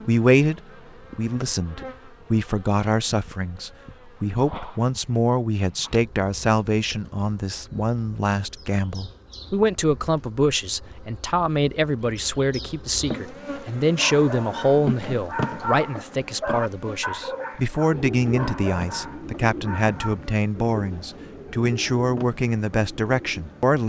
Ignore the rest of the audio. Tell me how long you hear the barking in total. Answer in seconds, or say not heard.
6 s.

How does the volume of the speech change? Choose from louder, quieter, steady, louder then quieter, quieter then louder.
steady.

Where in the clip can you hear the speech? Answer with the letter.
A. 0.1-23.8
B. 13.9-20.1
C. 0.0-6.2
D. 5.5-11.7
A.